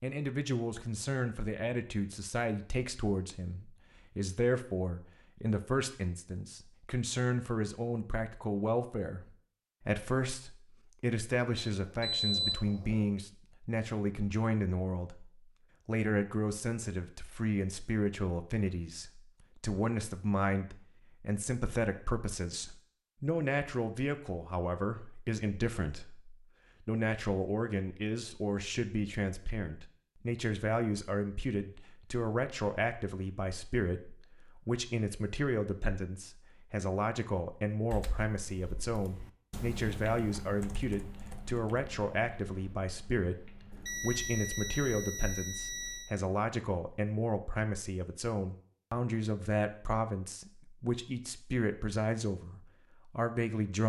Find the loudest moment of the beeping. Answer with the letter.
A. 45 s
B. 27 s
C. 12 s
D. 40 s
C.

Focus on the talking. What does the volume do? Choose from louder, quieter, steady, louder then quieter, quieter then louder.
steady.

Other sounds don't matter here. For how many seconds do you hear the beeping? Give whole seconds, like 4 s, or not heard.
4 s.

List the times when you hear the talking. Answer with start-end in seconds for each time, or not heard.
0.0-53.8.